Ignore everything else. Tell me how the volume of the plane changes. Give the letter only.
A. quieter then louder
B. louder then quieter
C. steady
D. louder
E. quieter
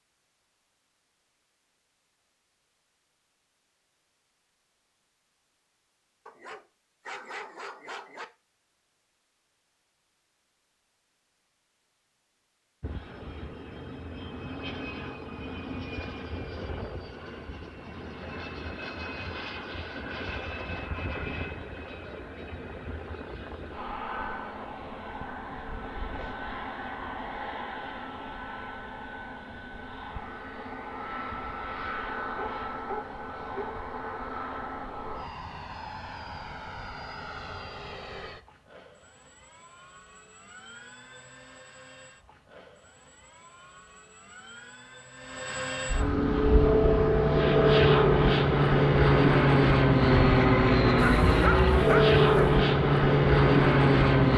A.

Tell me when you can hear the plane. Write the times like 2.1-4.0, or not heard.
12.8-54.3.